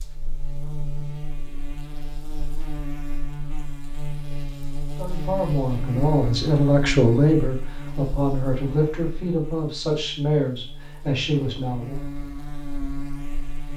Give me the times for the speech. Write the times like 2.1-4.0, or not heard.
5.0-12.0.